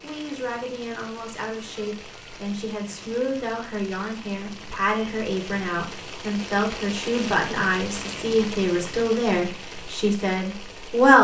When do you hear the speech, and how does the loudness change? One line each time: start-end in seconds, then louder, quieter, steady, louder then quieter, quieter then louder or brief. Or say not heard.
0.0-11.2 louder.